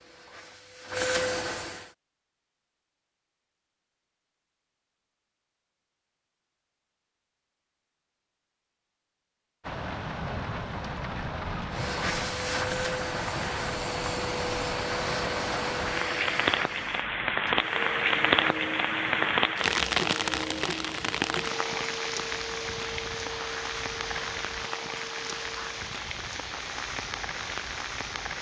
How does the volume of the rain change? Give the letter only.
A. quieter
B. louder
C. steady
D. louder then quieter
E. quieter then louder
D.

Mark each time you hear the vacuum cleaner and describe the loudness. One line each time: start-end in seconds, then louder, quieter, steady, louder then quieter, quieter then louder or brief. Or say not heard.
0.0-1.9 brief
11.6-25.9 quieter.